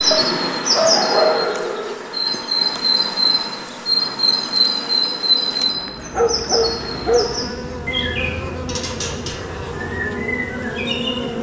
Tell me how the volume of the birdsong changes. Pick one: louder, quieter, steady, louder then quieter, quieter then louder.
quieter.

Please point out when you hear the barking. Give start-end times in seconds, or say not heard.
0.1-1.4, 6.1-7.3.